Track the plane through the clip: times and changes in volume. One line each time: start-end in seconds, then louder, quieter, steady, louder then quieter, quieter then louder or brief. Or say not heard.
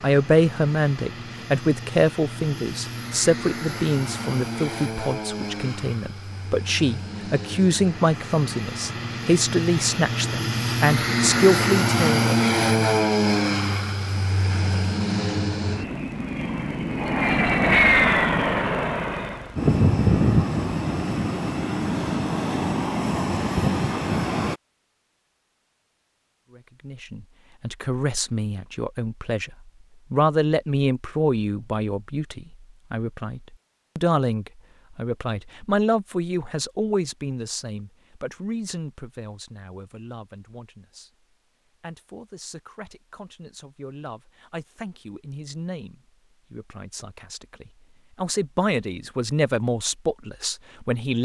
0.0-24.6 louder.